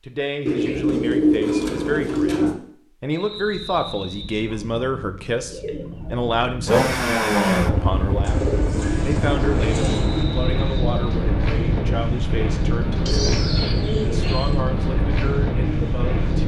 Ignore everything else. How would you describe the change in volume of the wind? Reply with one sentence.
The volume of the wind goes up.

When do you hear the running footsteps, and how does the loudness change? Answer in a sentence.
You can't hear the running footsteps here.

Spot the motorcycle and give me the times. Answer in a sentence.
You can hear the motorcycle from 6.7 to 10.6 s.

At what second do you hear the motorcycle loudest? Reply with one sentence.
The loudest moment of the motorcycle is at 7 seconds.